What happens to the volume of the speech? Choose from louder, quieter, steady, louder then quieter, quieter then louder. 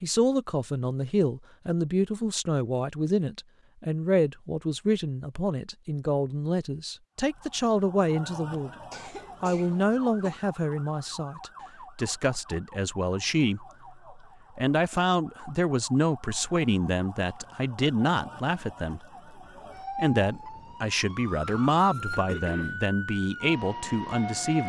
steady.